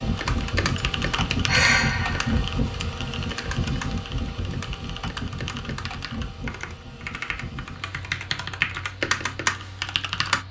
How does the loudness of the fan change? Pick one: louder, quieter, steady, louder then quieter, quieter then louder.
quieter.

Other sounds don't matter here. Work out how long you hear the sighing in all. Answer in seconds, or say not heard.
2 s.